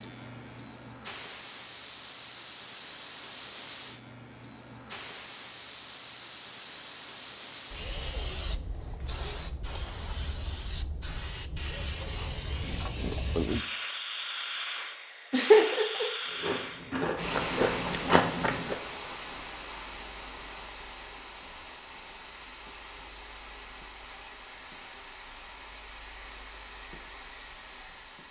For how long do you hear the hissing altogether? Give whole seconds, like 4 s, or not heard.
28 s.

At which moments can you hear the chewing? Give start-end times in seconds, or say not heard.
16.2-18.8.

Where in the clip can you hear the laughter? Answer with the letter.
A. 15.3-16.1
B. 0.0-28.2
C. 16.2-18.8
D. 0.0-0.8
A.